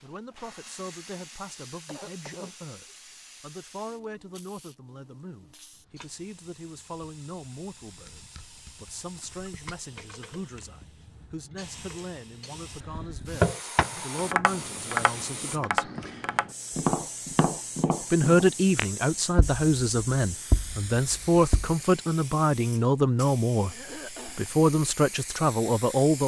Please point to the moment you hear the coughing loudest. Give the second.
24 s.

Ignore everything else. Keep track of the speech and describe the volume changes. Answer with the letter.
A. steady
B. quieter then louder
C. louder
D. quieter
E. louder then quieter
C.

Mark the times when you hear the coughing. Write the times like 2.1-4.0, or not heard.
1.9-3.0, 23.6-24.5.